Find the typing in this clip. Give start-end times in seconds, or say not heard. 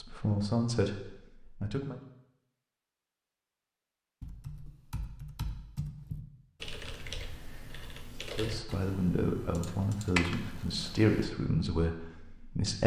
4.2-11.3.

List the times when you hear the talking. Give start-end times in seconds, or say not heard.
0.0-2.0, 8.3-12.8.